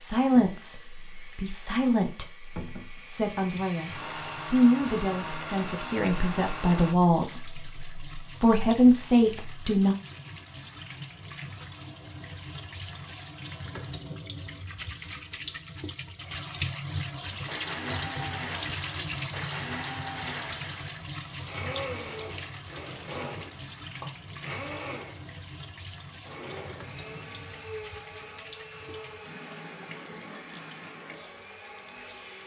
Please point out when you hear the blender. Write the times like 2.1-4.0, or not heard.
0.2-7.0, 17.3-32.4.